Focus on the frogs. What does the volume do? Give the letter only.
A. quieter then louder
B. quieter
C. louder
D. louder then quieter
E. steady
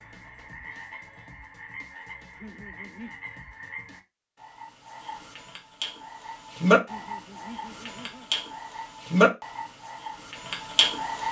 C.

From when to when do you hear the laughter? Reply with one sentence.
You can hear the laughter from 2.4 to 3.1 s and from 6.8 to 8.3 s.